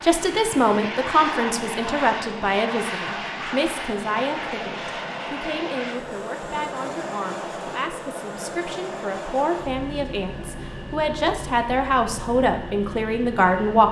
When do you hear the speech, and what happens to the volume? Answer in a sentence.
You can hear the speech from 0.0 to 13.8 s, getting quieter then louder.